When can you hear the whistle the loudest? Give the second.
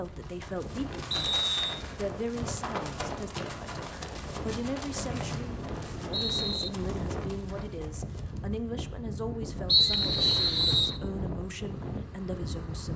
10 s.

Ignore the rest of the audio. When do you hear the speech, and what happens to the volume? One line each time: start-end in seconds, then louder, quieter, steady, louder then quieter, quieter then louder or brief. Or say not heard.
0.0-12.9 steady.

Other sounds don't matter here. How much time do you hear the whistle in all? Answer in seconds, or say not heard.
4 s.